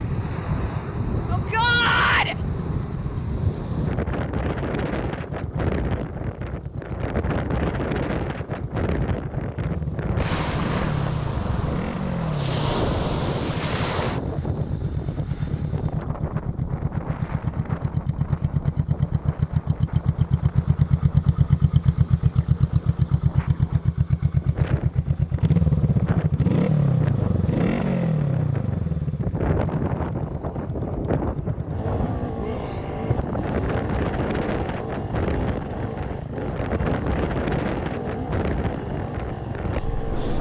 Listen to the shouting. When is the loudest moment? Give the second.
2 s.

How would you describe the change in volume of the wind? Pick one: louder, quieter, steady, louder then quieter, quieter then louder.
quieter then louder.